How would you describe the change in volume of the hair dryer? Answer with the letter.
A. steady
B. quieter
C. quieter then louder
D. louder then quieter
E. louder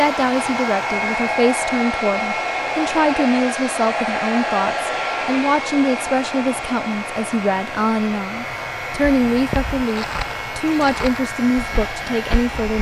B.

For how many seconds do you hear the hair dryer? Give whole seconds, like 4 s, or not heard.
13 s.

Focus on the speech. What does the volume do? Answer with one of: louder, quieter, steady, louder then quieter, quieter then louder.
steady.